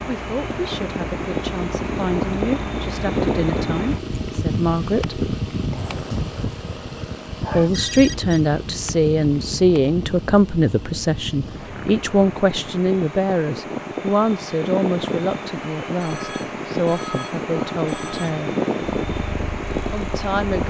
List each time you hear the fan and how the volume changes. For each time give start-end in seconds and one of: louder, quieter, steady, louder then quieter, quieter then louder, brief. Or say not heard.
0.0-20.6 quieter then louder.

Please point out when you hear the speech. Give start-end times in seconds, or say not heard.
0.1-5.2, 7.5-18.6, 19.9-20.6.